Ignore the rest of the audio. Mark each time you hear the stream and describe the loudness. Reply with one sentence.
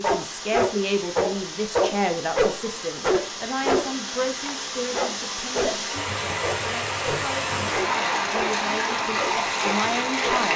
The stream can be heard from 0.0 to 10.5 s, getting louder.